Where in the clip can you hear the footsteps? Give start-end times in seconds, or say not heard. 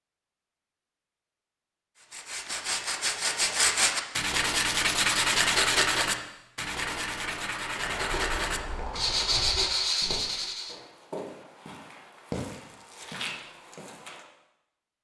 7.8-14.2.